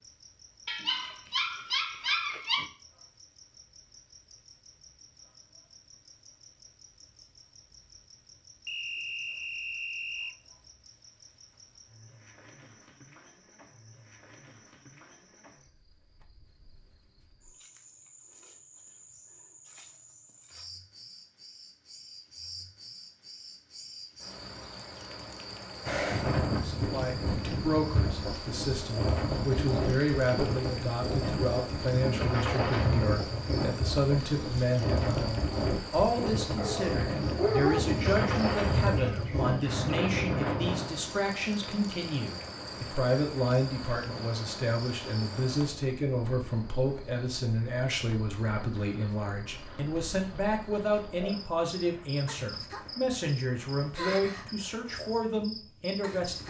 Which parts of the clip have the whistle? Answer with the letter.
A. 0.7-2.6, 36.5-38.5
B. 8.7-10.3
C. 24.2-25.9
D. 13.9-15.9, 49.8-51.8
B.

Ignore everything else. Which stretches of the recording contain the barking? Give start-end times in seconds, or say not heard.
0.7-2.6, 36.5-38.5.